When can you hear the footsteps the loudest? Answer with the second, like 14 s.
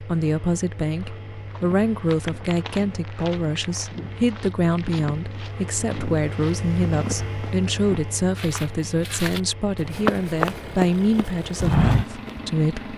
12 s.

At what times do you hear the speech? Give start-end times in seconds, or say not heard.
0.0-12.9.